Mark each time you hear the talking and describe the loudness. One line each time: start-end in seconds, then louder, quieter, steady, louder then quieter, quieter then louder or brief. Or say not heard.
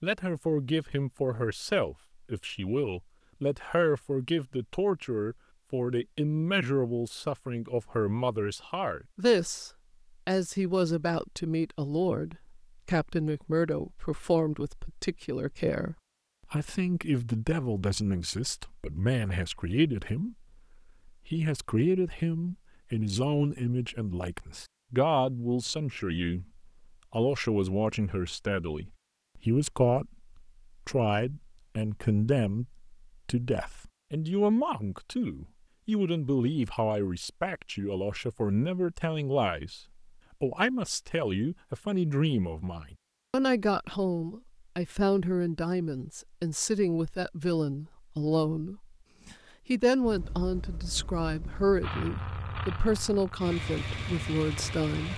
0.0-20.4 steady
21.1-55.1 steady.